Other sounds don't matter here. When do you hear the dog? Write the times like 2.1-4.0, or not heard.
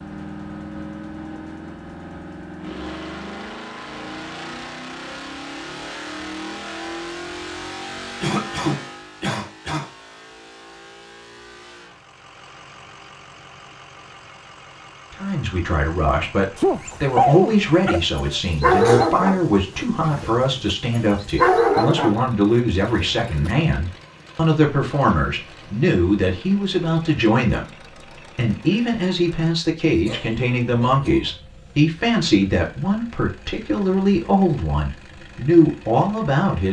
16.6-23.5.